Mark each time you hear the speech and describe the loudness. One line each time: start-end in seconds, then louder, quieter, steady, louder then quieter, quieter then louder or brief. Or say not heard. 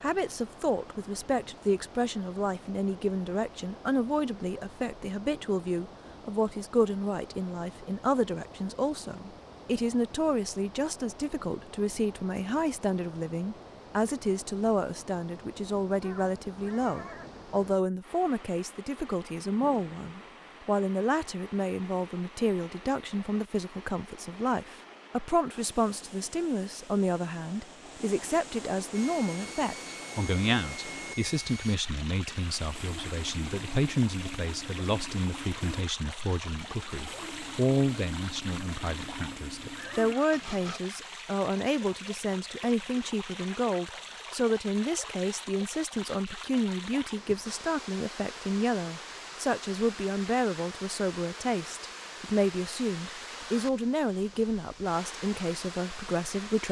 0.0-56.6 steady.